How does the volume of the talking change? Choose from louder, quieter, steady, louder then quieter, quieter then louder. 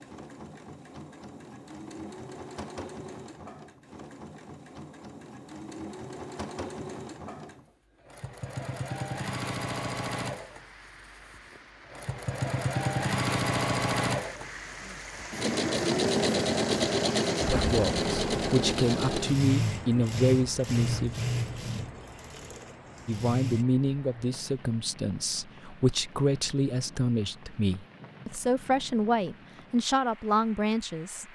steady.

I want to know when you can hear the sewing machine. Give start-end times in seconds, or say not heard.
0.0-23.6.